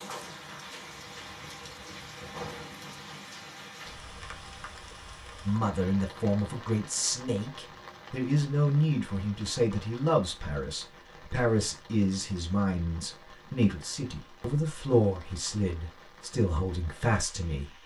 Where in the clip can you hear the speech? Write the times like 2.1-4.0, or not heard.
5.5-17.8.